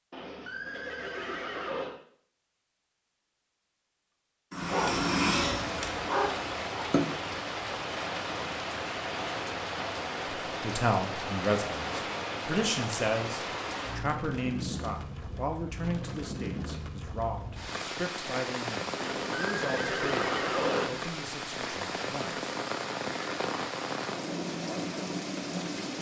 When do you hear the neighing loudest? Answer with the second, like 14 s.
21 s.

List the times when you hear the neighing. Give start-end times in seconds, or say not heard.
0.1-1.9, 18.9-21.1.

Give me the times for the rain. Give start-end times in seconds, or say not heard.
4.5-25.9.